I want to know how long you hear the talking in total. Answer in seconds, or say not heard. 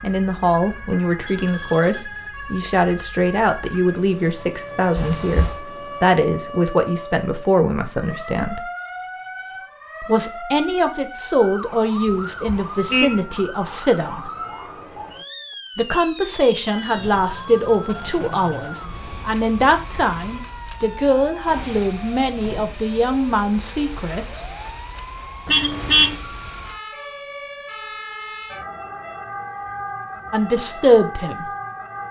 23 s.